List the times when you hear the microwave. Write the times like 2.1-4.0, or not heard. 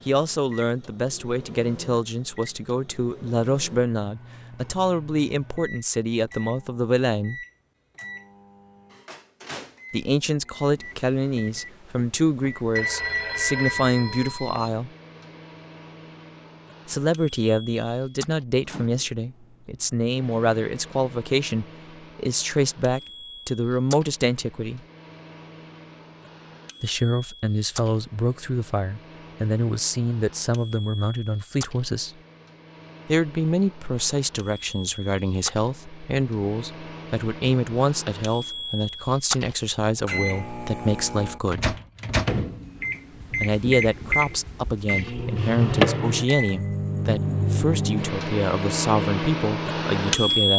0.0-50.5.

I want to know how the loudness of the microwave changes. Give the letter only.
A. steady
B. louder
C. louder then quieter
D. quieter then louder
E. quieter
B.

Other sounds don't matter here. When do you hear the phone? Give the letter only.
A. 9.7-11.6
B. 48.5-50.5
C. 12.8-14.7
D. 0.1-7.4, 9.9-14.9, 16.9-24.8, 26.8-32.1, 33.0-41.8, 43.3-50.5
C.